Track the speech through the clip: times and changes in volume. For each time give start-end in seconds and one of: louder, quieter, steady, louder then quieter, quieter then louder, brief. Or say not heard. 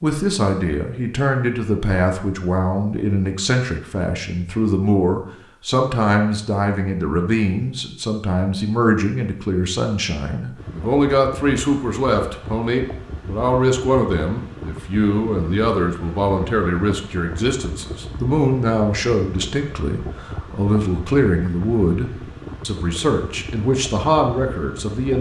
0.0-25.1 steady.